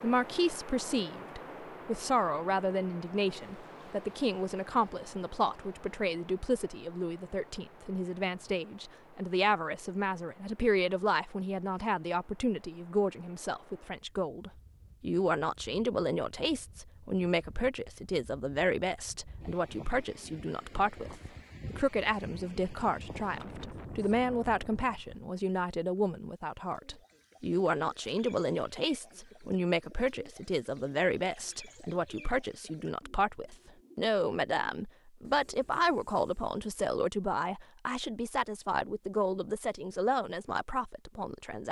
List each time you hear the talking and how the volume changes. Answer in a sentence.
The talking can be heard from 0.0 to 41.6 s, at a steady volume.